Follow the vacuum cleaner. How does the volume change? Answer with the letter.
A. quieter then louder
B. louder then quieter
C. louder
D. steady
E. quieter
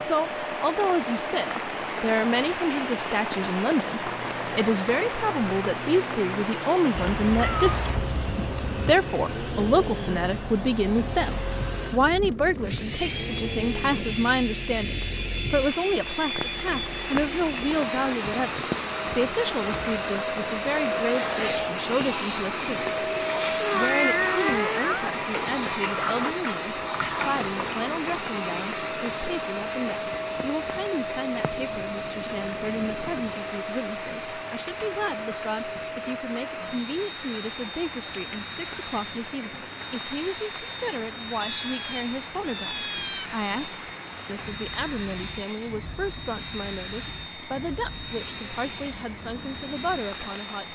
B.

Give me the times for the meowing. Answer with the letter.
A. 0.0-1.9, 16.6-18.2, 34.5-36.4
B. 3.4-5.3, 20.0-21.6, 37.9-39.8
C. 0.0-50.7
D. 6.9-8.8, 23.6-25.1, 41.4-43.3
D.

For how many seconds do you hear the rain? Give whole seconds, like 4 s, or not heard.
51 s.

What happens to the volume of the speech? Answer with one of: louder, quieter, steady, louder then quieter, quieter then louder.
quieter.